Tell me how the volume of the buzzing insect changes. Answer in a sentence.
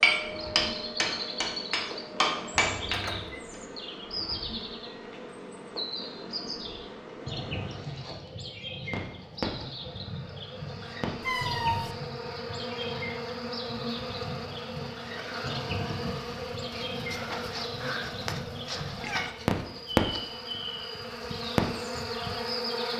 The loudness of the buzzing insect goes up.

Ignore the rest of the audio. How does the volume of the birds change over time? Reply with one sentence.
The loudness of the birds stays about the same.